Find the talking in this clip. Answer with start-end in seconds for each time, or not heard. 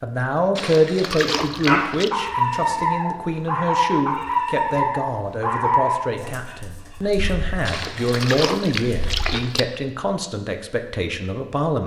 0.0-11.8.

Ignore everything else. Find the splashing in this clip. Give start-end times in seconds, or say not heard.
0.6-2.1, 7.7-9.6.